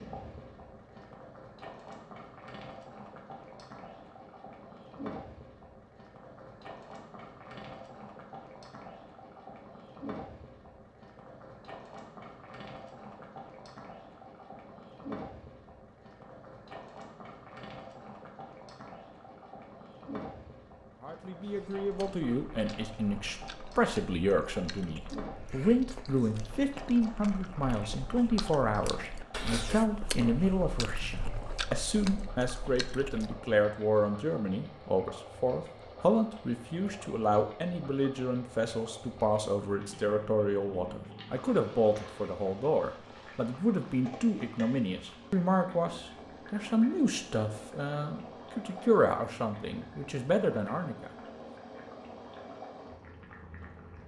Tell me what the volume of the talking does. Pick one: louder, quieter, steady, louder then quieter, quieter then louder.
steady.